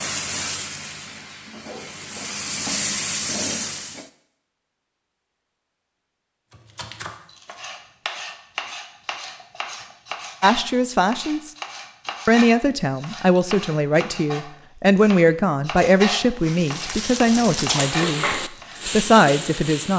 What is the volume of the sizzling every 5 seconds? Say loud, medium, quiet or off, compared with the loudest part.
loud, off, off, loud.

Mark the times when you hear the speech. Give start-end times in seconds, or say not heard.
10.4-11.5, 12.2-19.9.